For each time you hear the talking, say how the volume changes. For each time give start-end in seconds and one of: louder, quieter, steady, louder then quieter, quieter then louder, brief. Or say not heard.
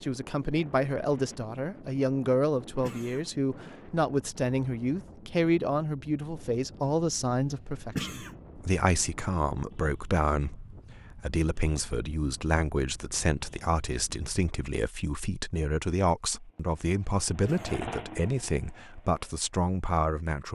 0.0-20.5 steady.